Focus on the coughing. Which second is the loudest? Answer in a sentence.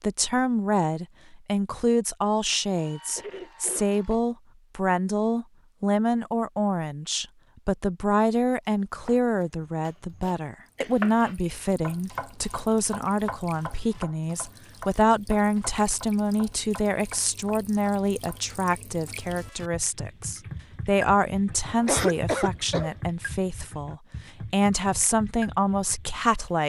The volume of the coughing peaks at 22 seconds.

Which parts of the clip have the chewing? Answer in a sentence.
The chewing can't be heard in this clip.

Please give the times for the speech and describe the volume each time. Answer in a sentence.
You can hear the speech from 0.0 to 26.6 s, at a steady volume.